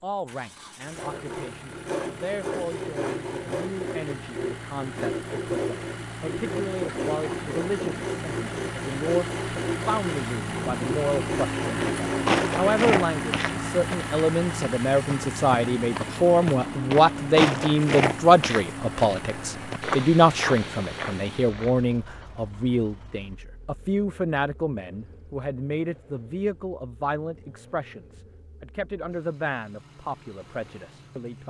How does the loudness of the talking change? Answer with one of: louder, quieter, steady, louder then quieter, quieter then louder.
louder then quieter.